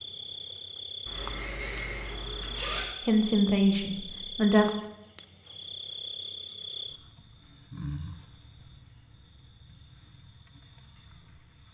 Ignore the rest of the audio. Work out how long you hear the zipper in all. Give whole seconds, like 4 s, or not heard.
2 s.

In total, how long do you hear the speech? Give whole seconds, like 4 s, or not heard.
2 s.